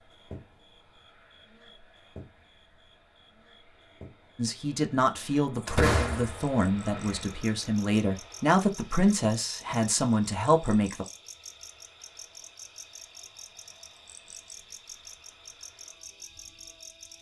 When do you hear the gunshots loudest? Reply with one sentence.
The loudest moment of the gunshots is at 6 seconds.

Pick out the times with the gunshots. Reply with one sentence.
You can hear the gunshots from 5.7 to 7.2 s.